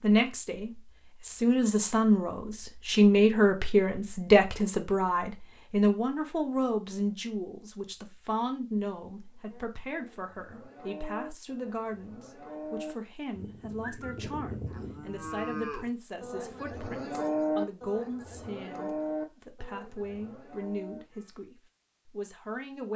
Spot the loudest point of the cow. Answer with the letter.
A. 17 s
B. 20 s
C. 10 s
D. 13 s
A.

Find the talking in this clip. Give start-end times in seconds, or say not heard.
0.0-22.9.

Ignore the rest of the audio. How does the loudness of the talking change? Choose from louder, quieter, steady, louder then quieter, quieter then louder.
quieter.